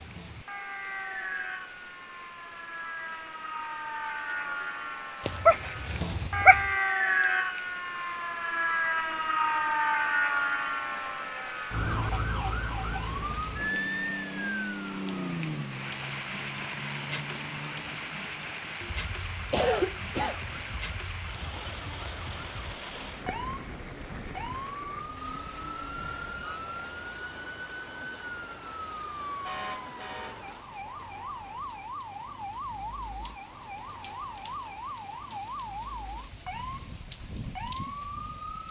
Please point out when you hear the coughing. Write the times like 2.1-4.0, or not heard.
19.5-20.6.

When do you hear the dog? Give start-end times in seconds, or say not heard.
5.2-6.7.